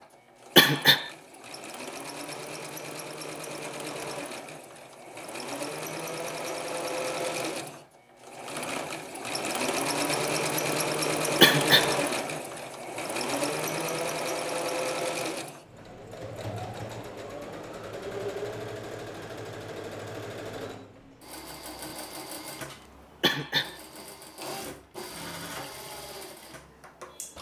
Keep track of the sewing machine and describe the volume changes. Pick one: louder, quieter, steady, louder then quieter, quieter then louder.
louder then quieter.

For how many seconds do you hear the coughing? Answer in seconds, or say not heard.
2 s.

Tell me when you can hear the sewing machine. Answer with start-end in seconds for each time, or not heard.
0.0-27.3.